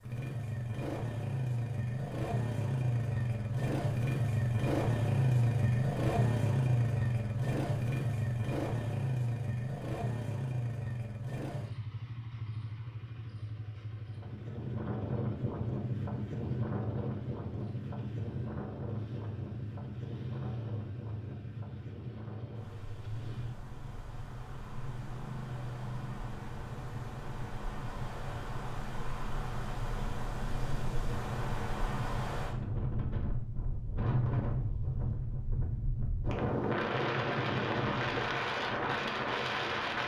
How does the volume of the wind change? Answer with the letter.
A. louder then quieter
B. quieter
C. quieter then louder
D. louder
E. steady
C.